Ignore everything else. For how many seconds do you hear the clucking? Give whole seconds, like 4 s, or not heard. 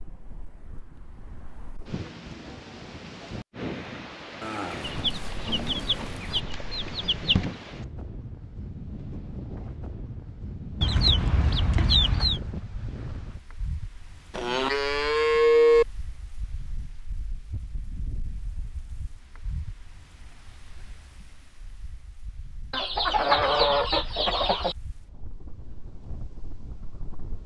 6 s.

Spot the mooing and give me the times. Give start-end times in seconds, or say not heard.
4.4-6.4, 14.3-15.8.